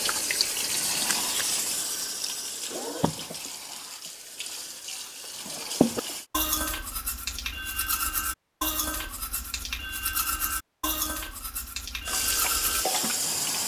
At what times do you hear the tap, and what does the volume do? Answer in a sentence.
The tap can be heard from 0.0 to 6.2 s, getting quieter then louder; and briefly from 12.1 to 13.6 s.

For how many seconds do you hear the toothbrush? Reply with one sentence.
You can hear the toothbrush for 7 seconds altogether.